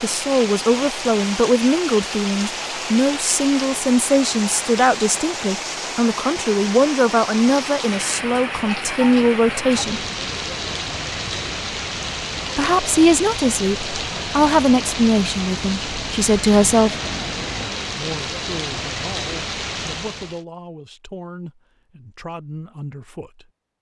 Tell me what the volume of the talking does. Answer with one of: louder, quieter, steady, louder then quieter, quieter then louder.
quieter.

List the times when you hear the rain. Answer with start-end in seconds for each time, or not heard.
0.0-20.4.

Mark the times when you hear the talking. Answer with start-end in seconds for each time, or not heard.
0.0-10.0, 12.6-16.9, 17.9-23.5.